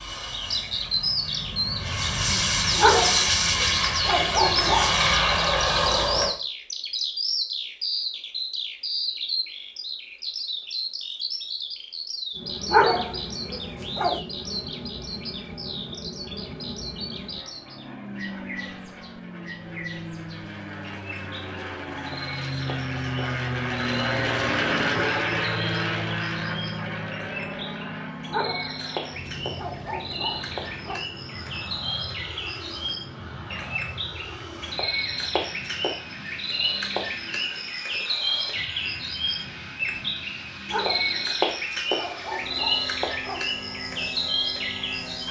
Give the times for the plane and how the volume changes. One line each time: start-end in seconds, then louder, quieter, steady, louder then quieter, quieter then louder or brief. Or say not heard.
0.0-6.3 louder
12.3-45.2 louder then quieter.